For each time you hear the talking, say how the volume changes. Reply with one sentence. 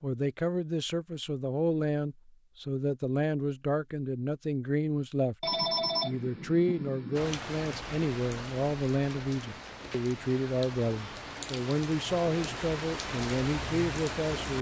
You can hear the talking from 0.0 to 14.5 s, at a steady volume.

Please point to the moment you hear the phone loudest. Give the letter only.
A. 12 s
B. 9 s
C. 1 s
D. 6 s
D.